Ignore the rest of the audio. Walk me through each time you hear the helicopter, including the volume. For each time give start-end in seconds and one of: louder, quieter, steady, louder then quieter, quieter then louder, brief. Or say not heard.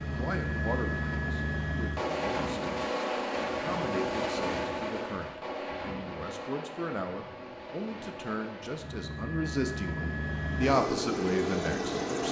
0.0-12.2 quieter then louder.